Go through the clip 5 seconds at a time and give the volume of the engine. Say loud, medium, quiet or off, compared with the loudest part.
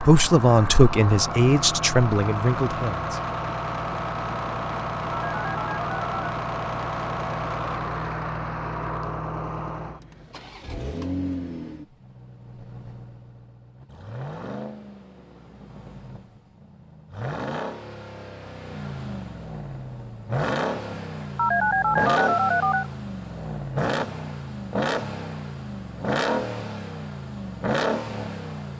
loud, loud, medium, medium, loud, loud.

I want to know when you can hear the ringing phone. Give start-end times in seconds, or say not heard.
5.1-6.3, 21.4-22.9.